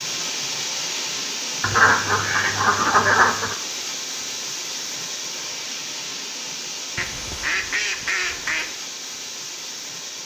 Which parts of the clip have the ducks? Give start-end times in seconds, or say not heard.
1.6-3.5, 7.0-8.8.